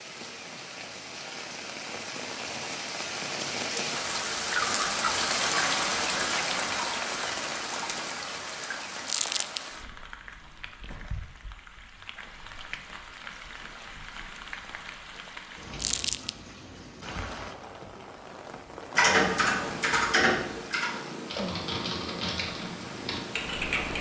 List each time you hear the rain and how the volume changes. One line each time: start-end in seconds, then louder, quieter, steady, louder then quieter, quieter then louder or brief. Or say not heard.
0.0-20.0 louder then quieter.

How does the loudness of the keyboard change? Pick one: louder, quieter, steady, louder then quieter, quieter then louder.
quieter.